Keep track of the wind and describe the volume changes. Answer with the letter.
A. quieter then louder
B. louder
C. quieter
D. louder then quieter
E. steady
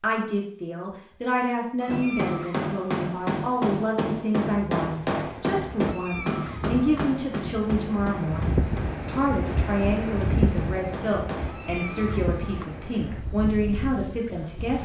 D.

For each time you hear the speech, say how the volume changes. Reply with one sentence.
You can hear the speech from 0.0 to 14.7 s, at a steady volume.